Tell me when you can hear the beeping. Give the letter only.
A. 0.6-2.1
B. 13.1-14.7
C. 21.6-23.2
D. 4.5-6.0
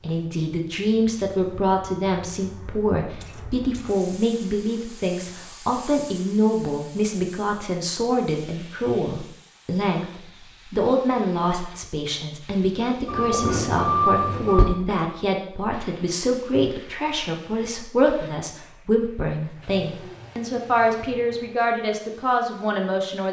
B.